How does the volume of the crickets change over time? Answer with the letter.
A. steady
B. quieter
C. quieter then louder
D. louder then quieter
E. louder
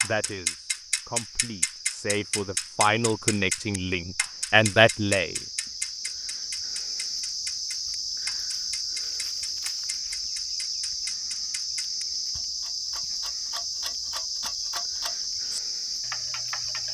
E.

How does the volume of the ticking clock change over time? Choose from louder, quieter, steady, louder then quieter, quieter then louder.
quieter.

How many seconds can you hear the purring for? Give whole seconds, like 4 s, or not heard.
not heard.